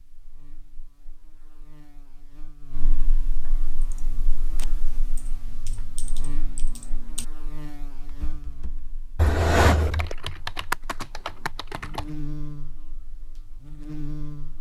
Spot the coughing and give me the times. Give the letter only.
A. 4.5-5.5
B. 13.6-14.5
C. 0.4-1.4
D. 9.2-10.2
D.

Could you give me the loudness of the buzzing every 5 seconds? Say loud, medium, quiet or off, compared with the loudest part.
medium, medium, loud.